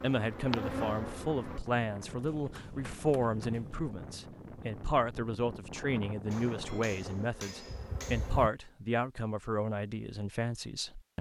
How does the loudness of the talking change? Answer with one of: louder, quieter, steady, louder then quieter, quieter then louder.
steady.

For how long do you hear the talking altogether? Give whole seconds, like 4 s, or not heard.
11 s.